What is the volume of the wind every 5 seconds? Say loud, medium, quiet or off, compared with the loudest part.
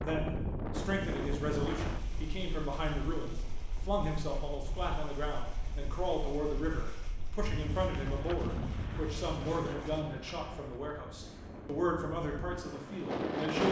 loud, medium, loud.